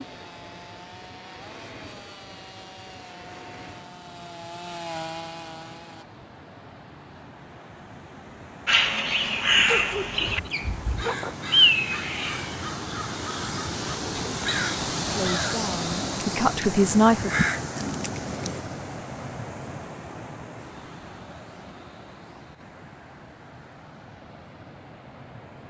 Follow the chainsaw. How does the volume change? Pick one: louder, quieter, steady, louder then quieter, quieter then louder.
louder.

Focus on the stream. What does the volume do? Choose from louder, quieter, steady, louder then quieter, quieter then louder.
louder then quieter.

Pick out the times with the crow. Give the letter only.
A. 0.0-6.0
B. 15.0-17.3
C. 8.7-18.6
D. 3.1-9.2
C.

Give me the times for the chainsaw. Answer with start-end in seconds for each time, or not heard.
0.0-6.0.